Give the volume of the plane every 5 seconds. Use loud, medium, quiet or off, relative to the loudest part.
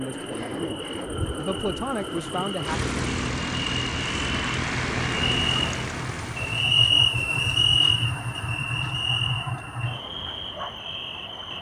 loud, loud, off.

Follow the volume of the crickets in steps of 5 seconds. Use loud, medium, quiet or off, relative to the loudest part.
medium, loud, medium.